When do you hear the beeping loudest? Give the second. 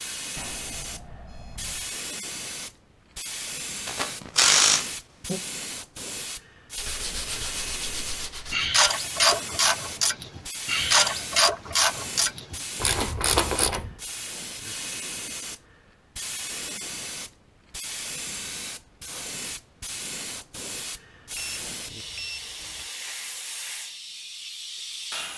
22 s.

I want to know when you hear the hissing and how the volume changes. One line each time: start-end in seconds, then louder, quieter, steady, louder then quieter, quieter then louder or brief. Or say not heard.
0.0-25.3 steady.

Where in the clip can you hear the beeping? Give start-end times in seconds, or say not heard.
0.3-1.9, 21.4-22.9.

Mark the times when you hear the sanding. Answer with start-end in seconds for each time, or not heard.
6.8-8.7.